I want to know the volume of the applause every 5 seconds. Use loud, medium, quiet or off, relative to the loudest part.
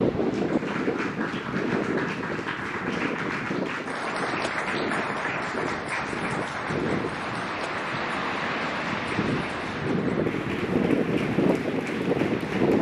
loud, loud, medium.